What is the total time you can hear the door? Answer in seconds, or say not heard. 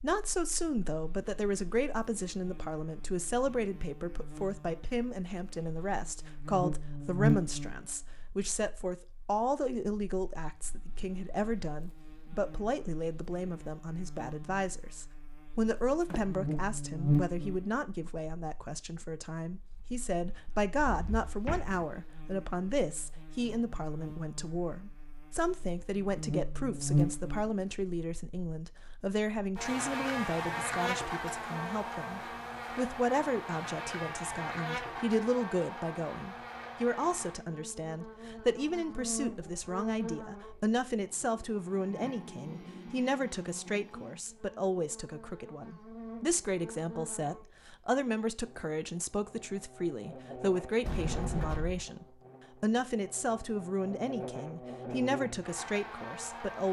3 s.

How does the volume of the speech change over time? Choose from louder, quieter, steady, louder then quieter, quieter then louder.
steady.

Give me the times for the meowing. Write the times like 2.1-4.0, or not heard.
not heard.